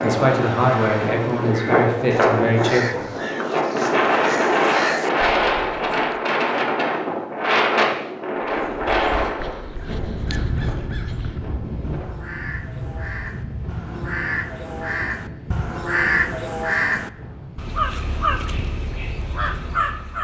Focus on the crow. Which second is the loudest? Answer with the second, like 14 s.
16 s.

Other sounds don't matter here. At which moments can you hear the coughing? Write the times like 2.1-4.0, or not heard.
not heard.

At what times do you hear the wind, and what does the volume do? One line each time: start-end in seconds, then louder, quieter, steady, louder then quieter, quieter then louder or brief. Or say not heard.
0.0-20.1 quieter.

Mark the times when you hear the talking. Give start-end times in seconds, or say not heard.
0.0-3.1.